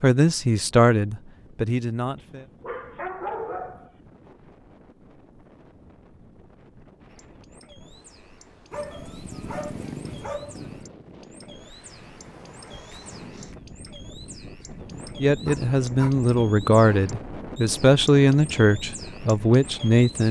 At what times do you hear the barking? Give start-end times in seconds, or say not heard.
2.2-3.9, 8.7-10.9, 15.4-16.1.